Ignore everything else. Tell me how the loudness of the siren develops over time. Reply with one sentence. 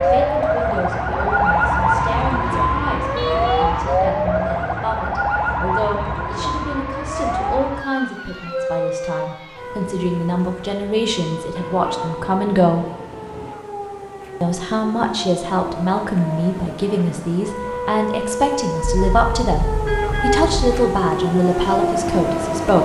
The loudness of the siren goes down, then up.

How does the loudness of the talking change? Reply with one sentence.
The volume of the talking goes up.